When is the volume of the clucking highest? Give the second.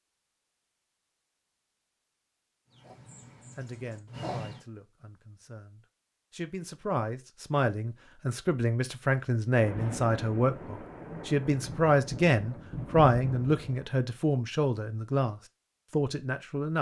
4 s.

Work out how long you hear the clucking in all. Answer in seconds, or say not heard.
2 s.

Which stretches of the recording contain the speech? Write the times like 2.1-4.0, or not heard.
3.5-16.7.